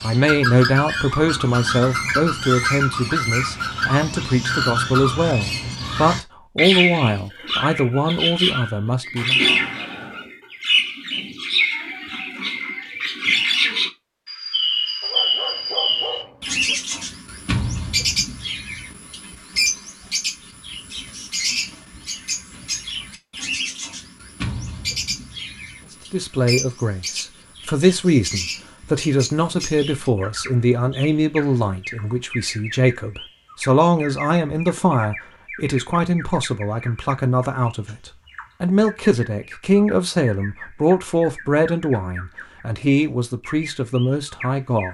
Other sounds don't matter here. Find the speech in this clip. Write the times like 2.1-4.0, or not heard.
0.0-9.4, 26.1-44.8.